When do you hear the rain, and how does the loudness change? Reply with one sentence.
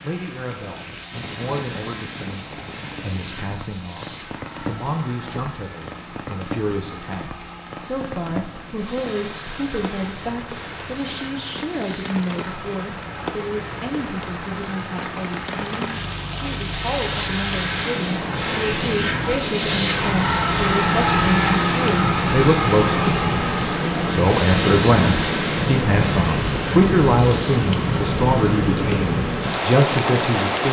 You can hear the rain from 0.0 to 30.6 s, getting louder.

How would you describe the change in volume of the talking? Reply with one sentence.
The loudness of the talking goes up.